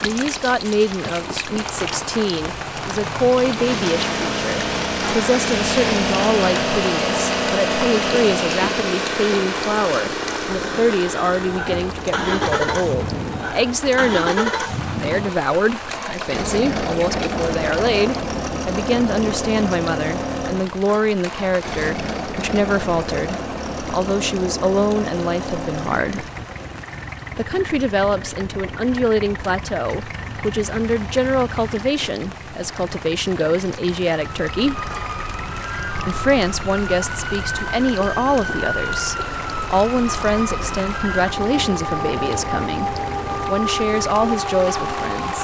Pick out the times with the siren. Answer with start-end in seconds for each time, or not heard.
34.3-45.3.